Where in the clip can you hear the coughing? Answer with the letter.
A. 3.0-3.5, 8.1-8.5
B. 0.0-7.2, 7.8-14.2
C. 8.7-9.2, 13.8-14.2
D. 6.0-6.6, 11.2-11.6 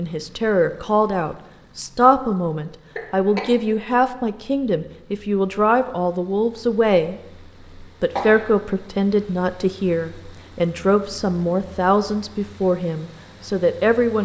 A.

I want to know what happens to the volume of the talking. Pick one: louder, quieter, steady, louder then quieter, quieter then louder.
steady.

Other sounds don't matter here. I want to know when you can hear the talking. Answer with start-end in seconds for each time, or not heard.
0.0-7.2, 7.8-14.2.